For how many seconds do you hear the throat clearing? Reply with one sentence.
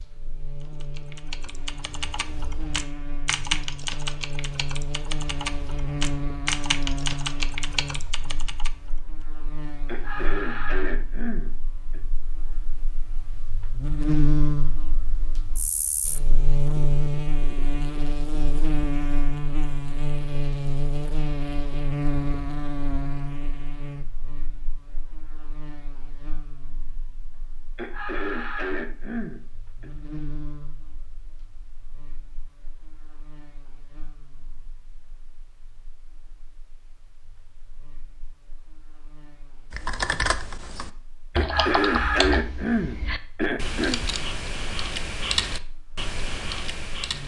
The throat clearing can be heard for 7 seconds in total.